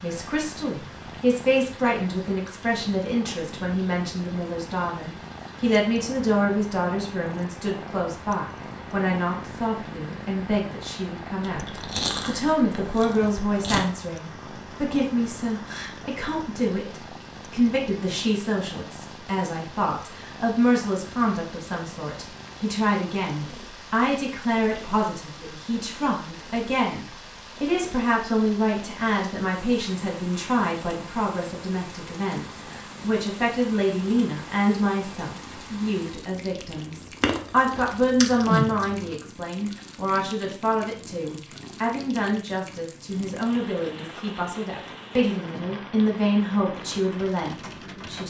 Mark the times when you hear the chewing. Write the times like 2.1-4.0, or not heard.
11.4-13.8, 37.2-39.1.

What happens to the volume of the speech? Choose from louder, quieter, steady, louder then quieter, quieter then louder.
steady.